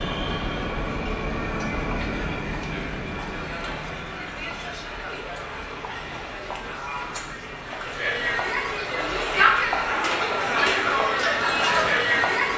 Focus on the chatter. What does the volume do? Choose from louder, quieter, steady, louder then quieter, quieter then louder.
louder.